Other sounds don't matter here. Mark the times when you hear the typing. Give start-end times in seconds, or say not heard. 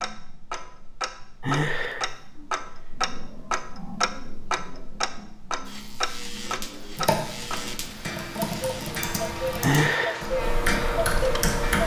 6.8-11.8.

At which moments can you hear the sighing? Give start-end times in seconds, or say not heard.
1.4-2.1, 9.6-10.2.